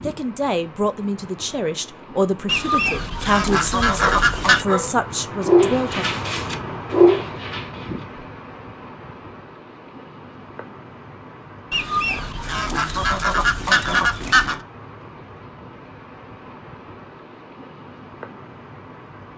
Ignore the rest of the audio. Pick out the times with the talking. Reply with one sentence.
You can hear the talking from 0.0 to 6.0 s.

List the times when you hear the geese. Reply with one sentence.
The geese can be heard from 2.5 to 4.7 s and from 11.7 to 14.6 s.